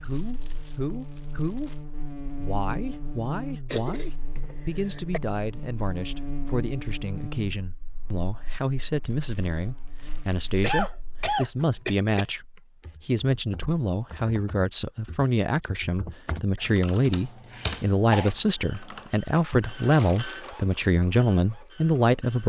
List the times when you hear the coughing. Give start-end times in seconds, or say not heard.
3.7-5.2, 10.6-12.2, 16.6-18.4.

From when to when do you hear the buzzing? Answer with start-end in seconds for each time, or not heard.
0.0-11.3.